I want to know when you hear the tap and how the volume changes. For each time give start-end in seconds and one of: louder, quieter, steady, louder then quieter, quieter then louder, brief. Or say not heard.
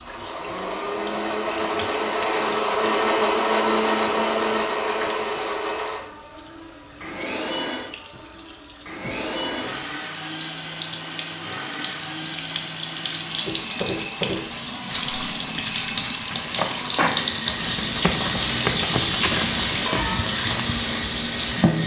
0.0-21.8 louder.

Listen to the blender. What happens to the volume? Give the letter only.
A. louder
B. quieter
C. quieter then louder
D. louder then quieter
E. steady
B.